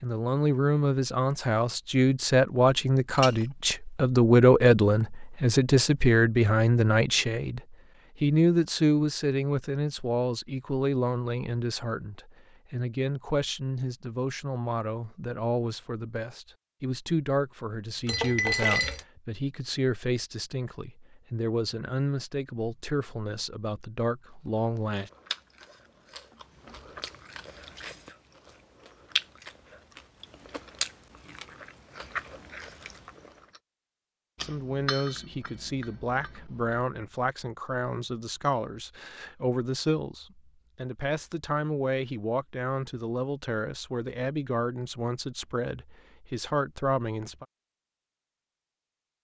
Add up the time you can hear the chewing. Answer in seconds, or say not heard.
9 s.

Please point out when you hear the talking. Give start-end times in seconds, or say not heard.
0.0-25.1, 34.4-47.5.